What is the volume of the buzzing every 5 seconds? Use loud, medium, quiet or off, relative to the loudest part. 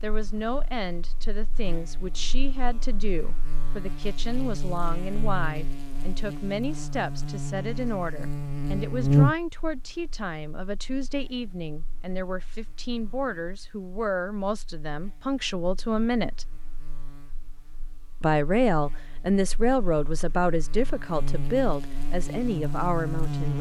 quiet, loud, quiet, quiet, medium.